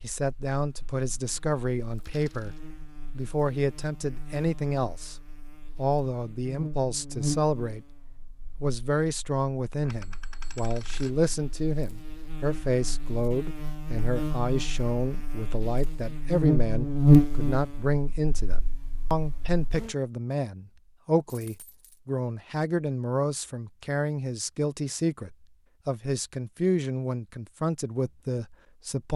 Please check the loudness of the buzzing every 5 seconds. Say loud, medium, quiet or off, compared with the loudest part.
quiet, quiet, quiet, loud, off, off.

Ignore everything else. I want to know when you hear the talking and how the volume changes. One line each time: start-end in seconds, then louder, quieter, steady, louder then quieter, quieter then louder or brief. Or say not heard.
0.0-2.5 brief
3.1-5.2 brief
5.8-8.0 brief
8.6-29.1 steady.